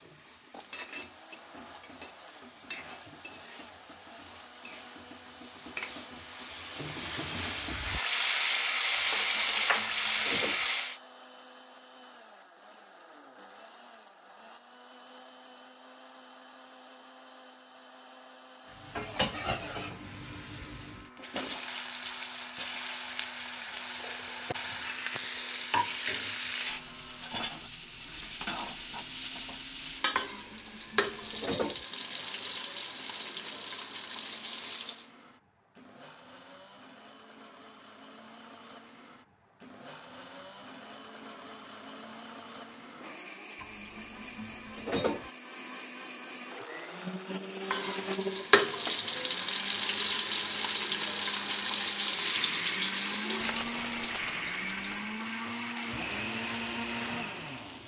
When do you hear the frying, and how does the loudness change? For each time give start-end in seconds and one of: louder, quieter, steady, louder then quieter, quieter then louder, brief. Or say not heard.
0.0-11.0 louder
18.7-35.1 steady
47.6-57.8 quieter.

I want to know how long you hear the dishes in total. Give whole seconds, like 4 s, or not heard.
5 s.